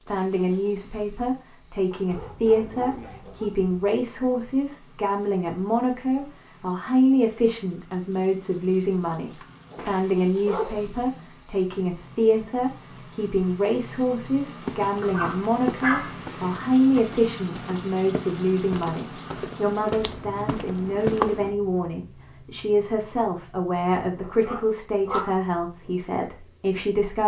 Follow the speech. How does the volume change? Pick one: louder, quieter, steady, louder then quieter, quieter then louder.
steady.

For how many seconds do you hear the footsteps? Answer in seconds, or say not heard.
7 s.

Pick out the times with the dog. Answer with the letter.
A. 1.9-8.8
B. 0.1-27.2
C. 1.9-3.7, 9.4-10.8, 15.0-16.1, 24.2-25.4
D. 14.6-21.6
C.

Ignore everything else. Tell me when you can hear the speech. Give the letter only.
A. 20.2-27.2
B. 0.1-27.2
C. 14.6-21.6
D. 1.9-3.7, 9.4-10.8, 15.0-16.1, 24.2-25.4
B.